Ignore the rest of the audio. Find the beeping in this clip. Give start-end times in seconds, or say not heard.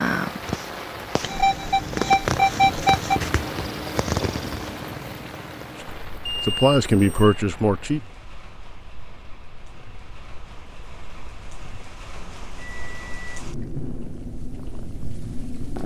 1.2-3.2, 6.2-7.4, 12.1-13.4.